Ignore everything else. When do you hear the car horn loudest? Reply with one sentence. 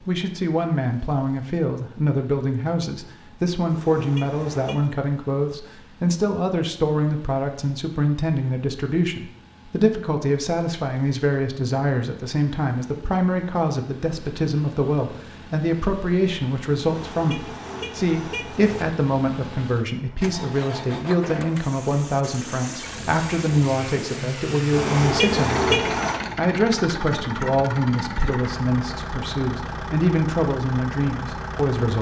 The loudest moment of the car horn is at 26 seconds.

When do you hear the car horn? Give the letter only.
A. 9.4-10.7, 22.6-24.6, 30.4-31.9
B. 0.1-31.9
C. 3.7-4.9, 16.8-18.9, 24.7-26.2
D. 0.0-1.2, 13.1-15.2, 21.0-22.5
C.